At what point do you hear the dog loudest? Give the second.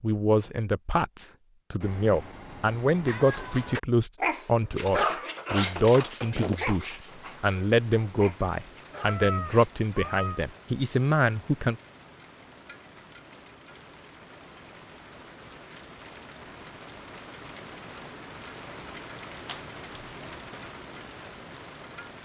5 s.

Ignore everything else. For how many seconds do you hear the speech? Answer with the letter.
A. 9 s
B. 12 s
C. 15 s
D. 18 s
B.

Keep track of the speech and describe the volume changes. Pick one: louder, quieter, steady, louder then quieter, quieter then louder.
steady.